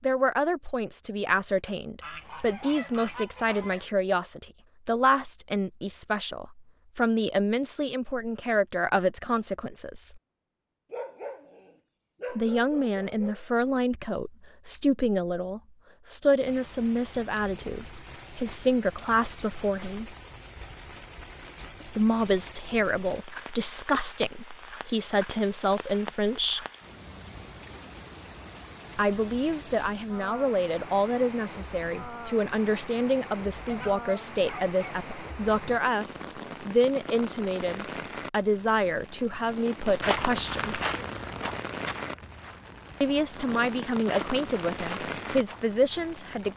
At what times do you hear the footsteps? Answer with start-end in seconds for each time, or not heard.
40.0-45.7.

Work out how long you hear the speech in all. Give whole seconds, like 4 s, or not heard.
38 s.